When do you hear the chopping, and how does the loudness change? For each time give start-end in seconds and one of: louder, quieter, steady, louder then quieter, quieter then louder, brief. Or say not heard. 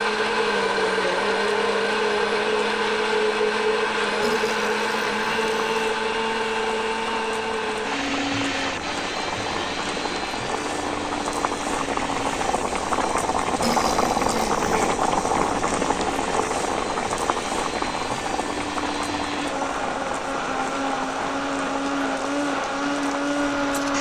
not heard.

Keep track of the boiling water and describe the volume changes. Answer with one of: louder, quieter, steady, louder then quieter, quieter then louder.
louder then quieter.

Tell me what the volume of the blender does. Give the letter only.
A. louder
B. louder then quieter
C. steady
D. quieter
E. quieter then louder
E.